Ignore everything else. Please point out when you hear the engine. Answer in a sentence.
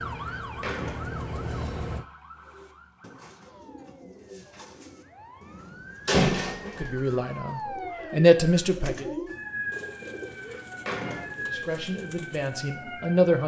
The engine can be heard from 0.0 to 2.0 s.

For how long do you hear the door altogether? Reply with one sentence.
The door can be heard for 4 seconds in total.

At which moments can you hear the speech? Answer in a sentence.
You can hear the speech from 6.7 to 9.1 s and from 11.2 to 13.4 s.